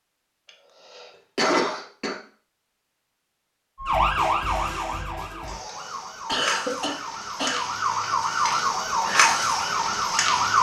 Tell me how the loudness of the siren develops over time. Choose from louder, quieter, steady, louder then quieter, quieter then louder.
quieter then louder.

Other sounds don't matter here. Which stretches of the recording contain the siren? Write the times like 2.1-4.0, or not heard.
3.8-10.5.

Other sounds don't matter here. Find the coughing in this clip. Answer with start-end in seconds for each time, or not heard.
0.5-2.1, 6.2-7.7.